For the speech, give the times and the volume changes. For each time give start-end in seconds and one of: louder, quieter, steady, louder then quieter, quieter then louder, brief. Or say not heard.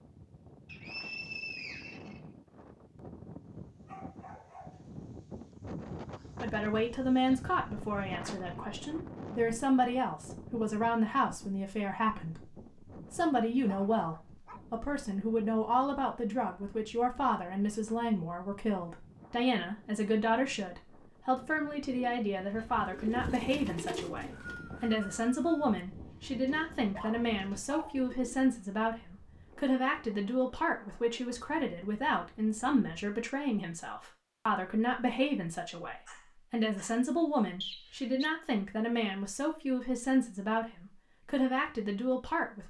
6.4-42.6 steady.